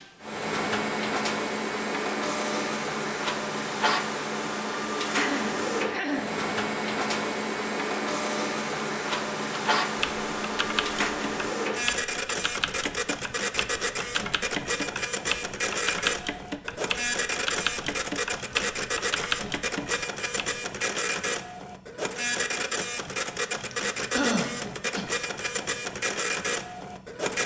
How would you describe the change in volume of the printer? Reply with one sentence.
The volume of the printer stays about the same.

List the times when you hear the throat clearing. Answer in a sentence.
You can hear the throat clearing from 5.2 to 6.3 s and from 23.7 to 25.1 s.